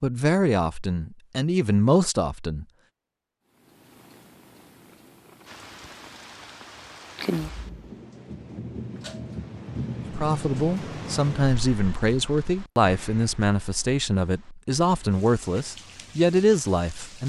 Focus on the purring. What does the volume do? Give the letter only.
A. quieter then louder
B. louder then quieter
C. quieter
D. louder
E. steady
D.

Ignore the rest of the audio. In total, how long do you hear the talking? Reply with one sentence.
The talking can be heard for 10 seconds in total.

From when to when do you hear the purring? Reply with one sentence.
You can hear the purring from 3.5 to 7.8 s.